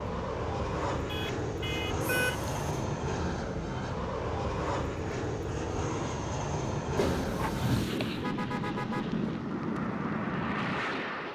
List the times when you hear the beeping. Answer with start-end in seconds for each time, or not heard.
2.0-2.6, 7.0-8.2.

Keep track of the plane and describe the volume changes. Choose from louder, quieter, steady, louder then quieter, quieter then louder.
steady.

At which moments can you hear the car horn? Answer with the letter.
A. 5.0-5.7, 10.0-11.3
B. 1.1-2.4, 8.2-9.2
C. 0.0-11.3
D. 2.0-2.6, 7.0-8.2
B.